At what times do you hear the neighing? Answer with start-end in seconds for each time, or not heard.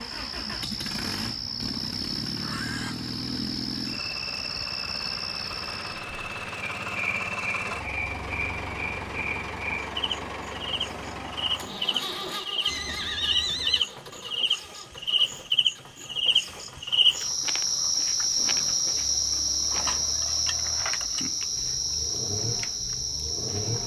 1.4-3.0, 12.7-13.8, 18.4-20.2.